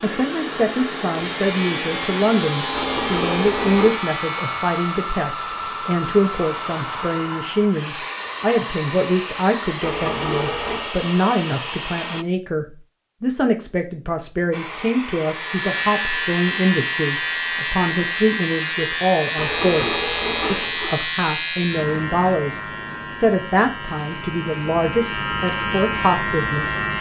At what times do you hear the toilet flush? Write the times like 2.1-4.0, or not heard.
2.7-4.0, 9.8-10.9, 19.4-21.1.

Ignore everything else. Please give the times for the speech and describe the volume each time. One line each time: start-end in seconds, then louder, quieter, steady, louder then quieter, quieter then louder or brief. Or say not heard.
0.0-26.8 steady.